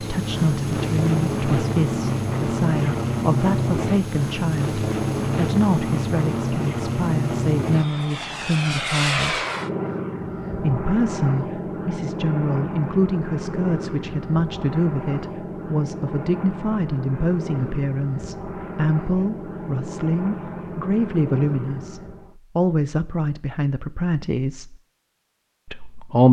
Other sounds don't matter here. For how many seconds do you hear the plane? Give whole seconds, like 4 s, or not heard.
22 s.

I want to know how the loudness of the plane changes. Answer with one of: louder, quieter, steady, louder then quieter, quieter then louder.
quieter.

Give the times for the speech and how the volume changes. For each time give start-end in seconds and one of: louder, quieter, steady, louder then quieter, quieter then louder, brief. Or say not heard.
0.0-9.4 steady
10.6-24.8 steady
25.6-26.2 brief.